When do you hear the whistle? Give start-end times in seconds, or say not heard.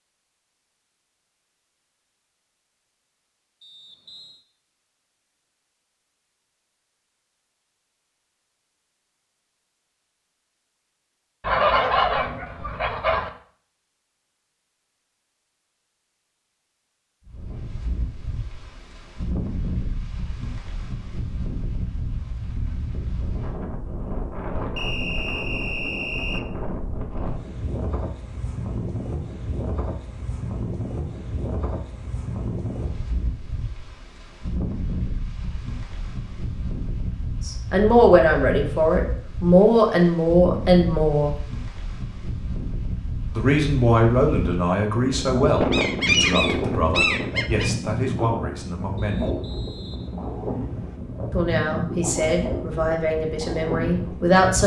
3.6-4.5, 24.8-26.4, 49.0-51.0.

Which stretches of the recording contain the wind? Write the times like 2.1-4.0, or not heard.
17.2-54.6.